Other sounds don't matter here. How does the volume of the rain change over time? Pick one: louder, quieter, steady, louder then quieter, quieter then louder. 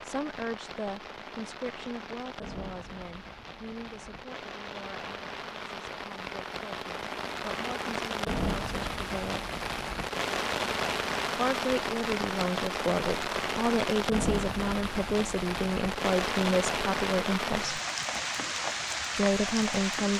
louder.